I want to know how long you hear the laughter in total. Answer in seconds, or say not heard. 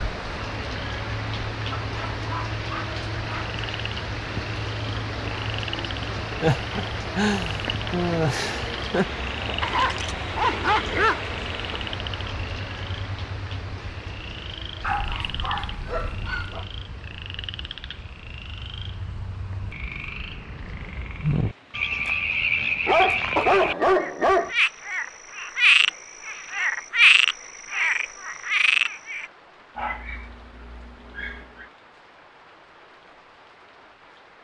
3 s.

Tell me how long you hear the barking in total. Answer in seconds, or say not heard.
9 s.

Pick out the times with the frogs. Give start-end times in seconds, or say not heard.
0.0-29.2.